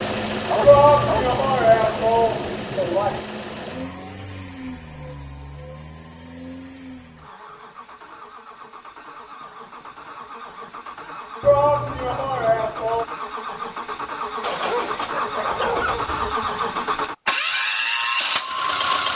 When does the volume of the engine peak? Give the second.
18 s.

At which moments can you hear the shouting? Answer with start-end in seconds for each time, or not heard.
0.6-3.2, 11.4-13.1.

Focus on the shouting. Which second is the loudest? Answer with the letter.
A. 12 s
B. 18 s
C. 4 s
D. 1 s
D.